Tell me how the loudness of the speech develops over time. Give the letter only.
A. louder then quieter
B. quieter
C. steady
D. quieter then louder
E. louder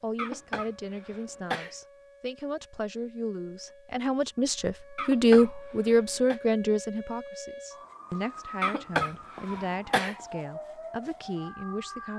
A.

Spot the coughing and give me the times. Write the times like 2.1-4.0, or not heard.
0.1-1.8, 5.0-6.4, 8.6-10.2.